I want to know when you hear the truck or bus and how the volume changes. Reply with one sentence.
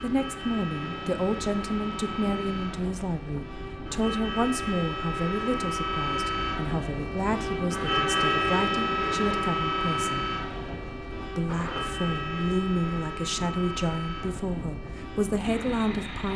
The truck or bus can be heard from 0.0 to 16.3 s, getting louder then quieter.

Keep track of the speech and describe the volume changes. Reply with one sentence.
The loudness of the speech stays about the same.